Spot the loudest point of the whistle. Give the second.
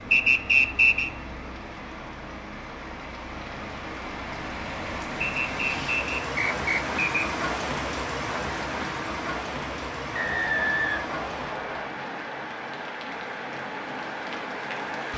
1 s.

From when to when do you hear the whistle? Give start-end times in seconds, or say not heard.
0.1-1.1, 5.2-7.2, 10.2-11.9.